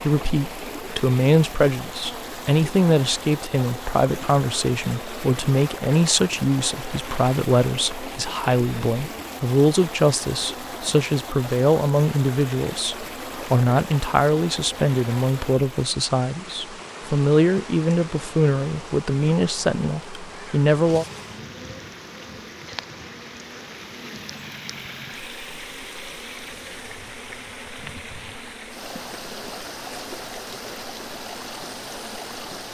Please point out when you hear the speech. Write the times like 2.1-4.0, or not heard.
0.0-21.1.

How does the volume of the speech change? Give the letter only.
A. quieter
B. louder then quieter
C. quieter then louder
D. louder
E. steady
E.